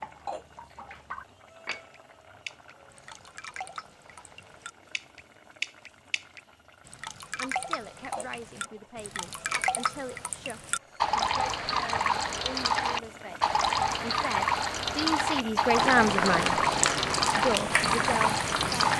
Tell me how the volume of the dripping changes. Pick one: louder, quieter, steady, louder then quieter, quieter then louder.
louder.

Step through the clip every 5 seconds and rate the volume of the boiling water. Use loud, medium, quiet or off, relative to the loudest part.
quiet, quiet, quiet, loud.